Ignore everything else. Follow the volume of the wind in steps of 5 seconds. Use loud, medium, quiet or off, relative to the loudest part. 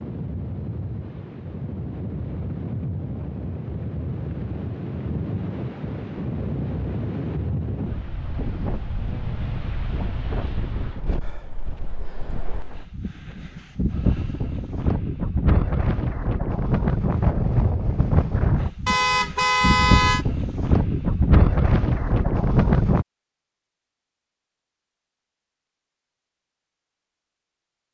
medium, medium, medium, loud, loud, off.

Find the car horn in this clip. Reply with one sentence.
The car horn can be heard from 18.9 to 20.2 s.